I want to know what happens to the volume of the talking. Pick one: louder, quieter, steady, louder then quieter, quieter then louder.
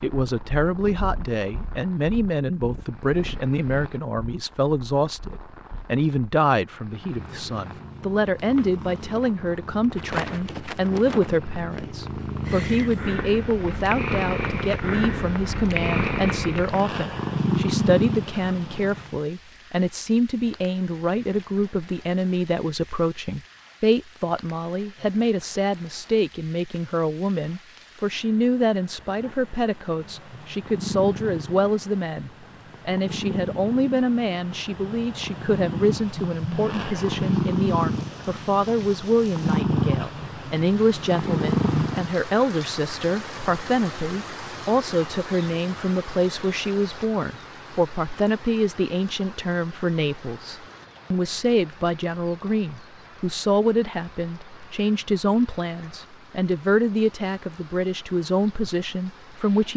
steady.